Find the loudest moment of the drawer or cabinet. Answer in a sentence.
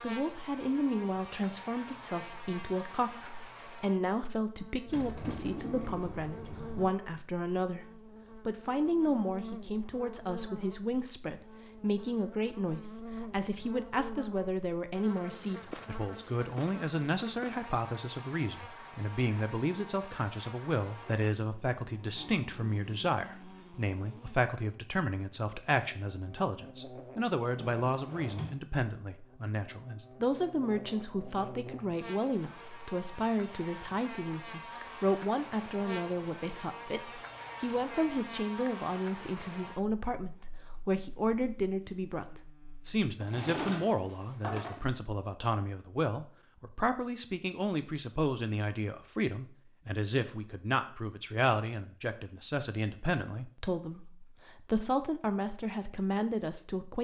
The volume of the drawer or cabinet peaks at 44 seconds.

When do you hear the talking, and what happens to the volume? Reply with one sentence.
The talking can be heard from 0.0 to 56.9 s, at a steady volume.